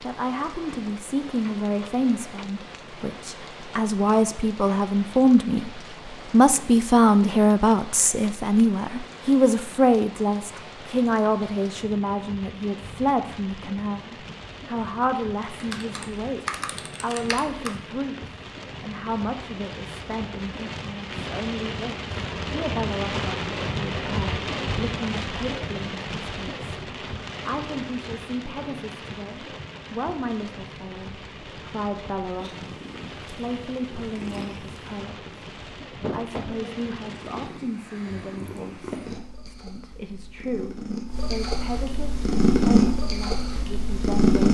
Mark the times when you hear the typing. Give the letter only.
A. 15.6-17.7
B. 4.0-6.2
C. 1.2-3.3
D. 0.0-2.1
A.